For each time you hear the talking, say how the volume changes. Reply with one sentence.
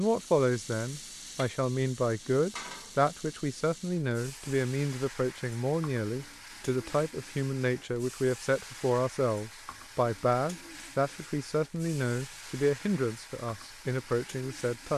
You can hear the talking from 0.0 to 14.9 s, at a steady volume.